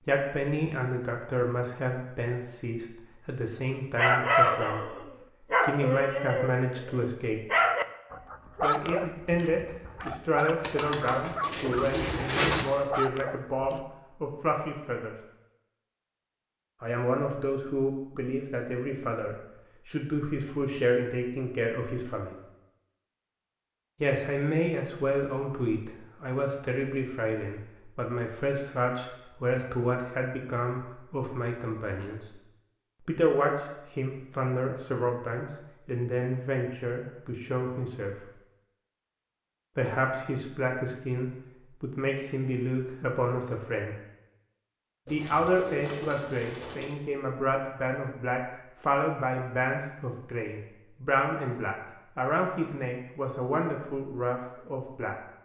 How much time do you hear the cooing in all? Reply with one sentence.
You can hear the cooing for 4 seconds altogether.